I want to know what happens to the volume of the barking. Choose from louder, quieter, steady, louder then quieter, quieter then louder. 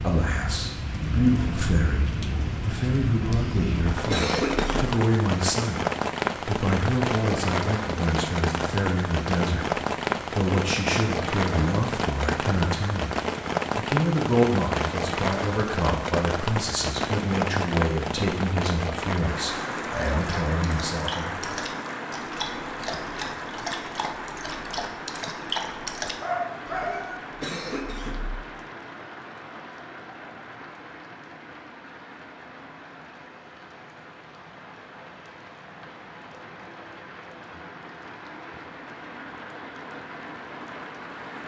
louder.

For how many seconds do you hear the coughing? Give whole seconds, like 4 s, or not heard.
3 s.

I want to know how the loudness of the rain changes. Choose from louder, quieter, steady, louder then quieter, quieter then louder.
quieter.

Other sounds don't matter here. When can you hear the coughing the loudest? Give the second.
4 s.